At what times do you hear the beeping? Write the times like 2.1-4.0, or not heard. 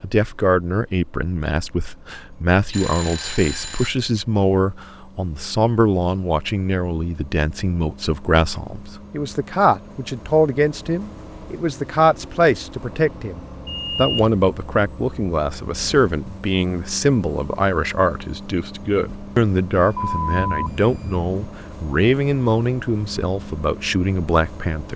2.7-3.9, 13.7-14.3, 19.7-21.2.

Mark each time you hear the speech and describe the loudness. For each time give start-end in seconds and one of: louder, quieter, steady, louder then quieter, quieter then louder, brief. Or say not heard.
0.0-24.9 steady.